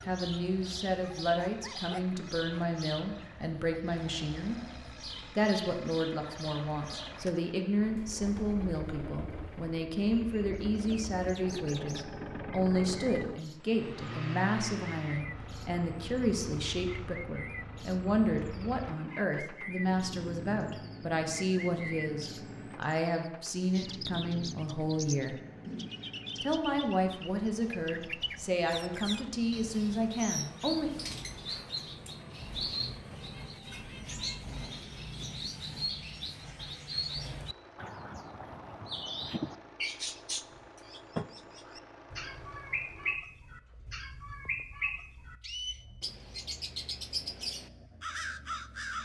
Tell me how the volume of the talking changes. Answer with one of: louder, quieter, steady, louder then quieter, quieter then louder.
steady.